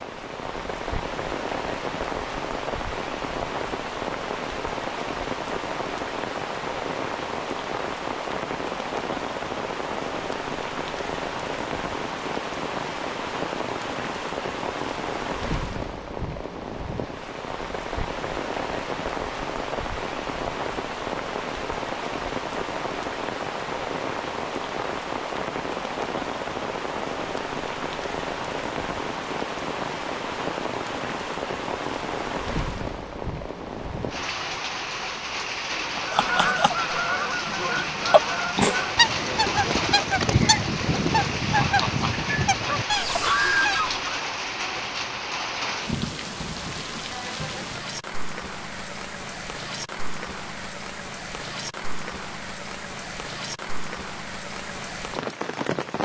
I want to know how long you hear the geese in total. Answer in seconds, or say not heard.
8 s.